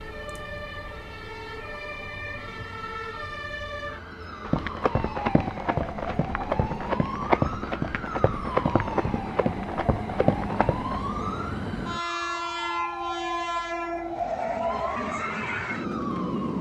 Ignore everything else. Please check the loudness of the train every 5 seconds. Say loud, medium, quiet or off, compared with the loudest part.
quiet, medium, loud, loud.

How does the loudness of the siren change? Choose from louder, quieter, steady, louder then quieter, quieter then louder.
steady.